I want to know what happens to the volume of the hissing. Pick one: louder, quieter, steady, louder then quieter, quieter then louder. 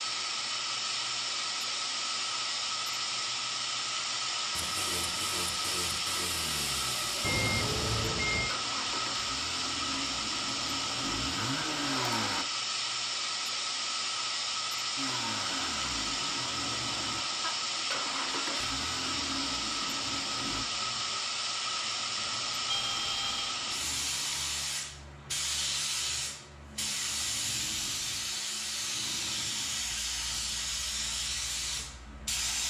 steady.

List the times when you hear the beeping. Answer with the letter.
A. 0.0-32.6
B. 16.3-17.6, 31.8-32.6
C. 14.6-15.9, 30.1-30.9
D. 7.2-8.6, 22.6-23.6
D.